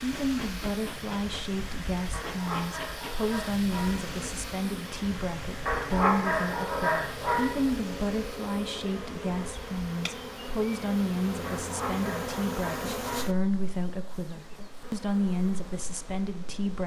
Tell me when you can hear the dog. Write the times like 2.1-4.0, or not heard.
2.1-4.0, 5.7-7.5, 11.4-13.3.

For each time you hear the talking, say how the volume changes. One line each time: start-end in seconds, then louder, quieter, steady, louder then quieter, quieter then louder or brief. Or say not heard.
0.0-16.8 steady.